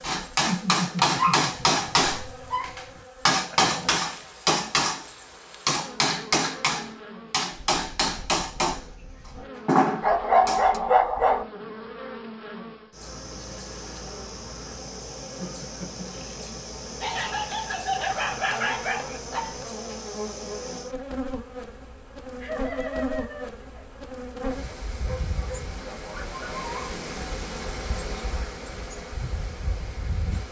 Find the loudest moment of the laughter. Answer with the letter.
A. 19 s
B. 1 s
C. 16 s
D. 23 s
B.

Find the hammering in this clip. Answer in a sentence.
You can hear the hammering from 0.0 to 10.8 s.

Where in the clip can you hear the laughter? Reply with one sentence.
The laughter can be heard from 0.5 to 1.9 s, from 15.3 to 16.2 s and from 22.4 to 23.9 s.